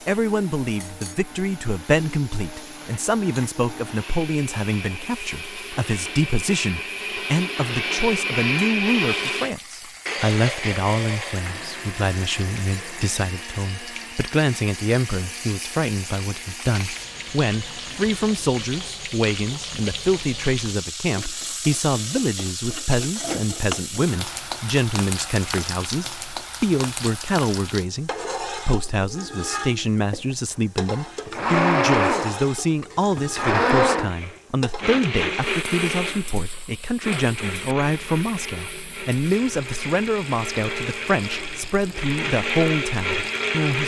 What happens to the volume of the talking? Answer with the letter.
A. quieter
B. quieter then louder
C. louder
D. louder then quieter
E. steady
E.